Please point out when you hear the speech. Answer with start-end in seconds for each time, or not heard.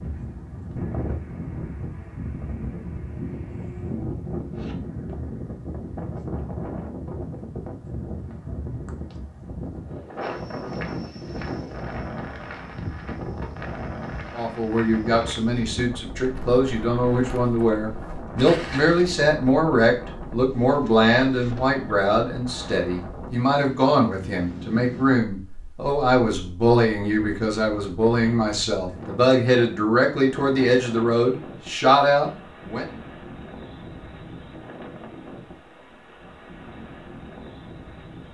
14.3-32.9.